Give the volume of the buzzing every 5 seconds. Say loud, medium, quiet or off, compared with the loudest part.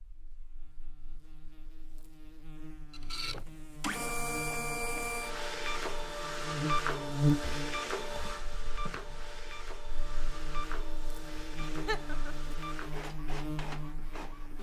quiet, loud, medium.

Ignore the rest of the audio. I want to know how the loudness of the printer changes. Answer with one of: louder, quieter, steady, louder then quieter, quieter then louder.
quieter.